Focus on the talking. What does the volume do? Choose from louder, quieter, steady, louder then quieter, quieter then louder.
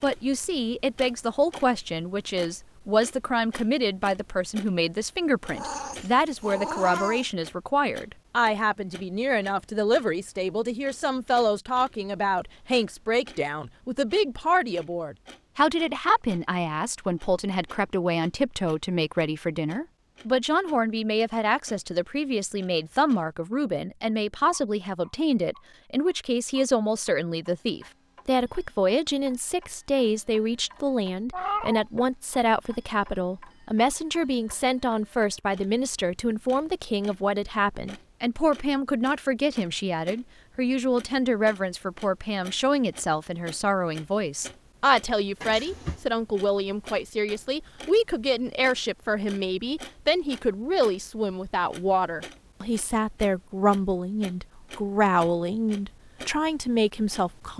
steady.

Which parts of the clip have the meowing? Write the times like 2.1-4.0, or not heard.
5.5-7.3, 31.3-31.9, 45.4-46.0.